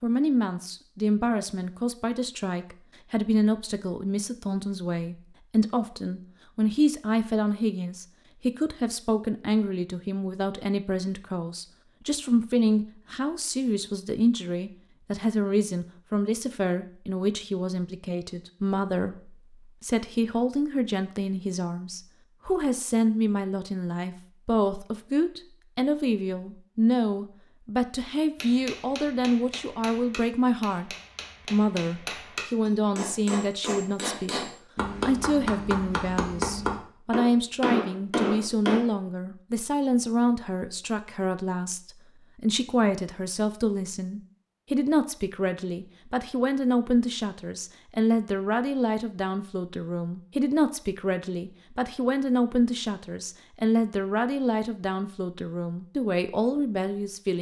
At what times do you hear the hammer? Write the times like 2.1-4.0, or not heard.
28.4-38.8.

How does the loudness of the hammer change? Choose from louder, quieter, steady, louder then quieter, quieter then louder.
louder.